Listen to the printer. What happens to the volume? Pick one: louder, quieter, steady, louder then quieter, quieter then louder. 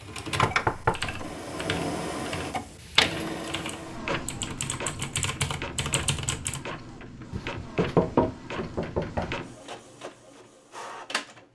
quieter.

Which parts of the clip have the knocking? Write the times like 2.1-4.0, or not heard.
0.4-1.2, 7.3-9.3.